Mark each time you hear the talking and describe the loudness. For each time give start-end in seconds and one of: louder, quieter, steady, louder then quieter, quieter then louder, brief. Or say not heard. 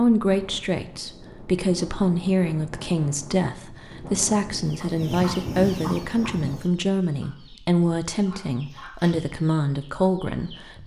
0.0-10.8 steady.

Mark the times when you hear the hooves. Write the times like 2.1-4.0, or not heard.
not heard.